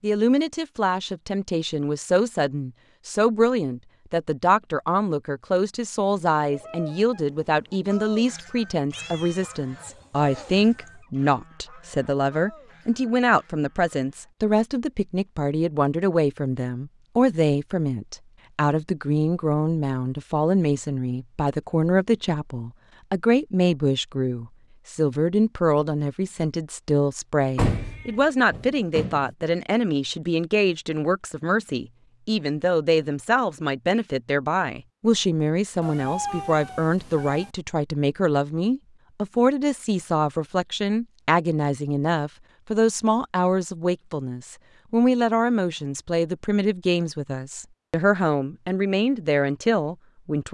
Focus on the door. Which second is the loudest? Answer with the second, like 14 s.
28 s.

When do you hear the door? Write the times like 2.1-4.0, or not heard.
27.6-29.4.